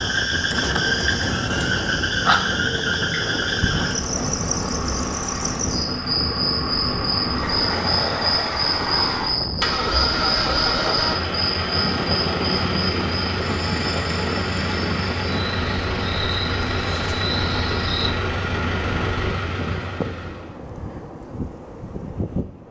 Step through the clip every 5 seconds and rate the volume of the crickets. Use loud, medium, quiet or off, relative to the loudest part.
loud, loud, medium, medium, off.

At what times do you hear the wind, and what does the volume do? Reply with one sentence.
You can hear the wind from 0.0 to 22.6 s, at a steady volume.